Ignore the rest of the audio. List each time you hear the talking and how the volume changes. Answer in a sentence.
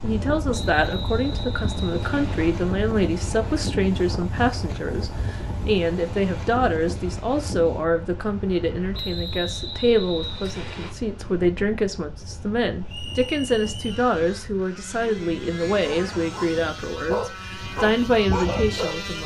You can hear the talking from 0.0 to 19.2 s, at a steady volume.